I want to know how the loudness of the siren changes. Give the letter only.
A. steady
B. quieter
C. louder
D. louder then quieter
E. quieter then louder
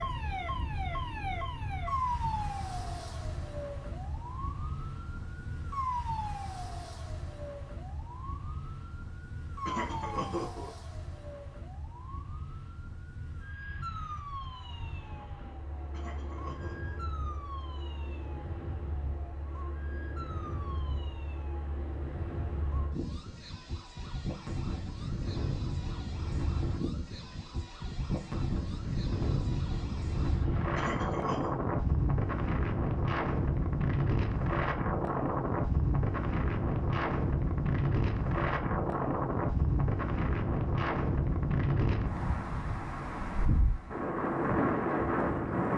B.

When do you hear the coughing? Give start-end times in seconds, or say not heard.
9.7-10.8, 15.9-17.0, 30.8-31.5.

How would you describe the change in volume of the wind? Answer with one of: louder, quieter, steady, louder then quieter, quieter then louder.
louder.